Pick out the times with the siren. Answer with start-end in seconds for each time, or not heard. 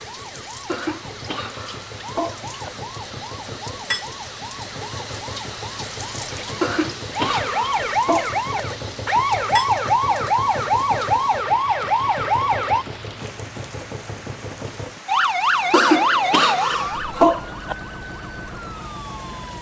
0.0-12.8, 15.1-19.5.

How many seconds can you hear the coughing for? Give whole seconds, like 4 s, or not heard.
6 s.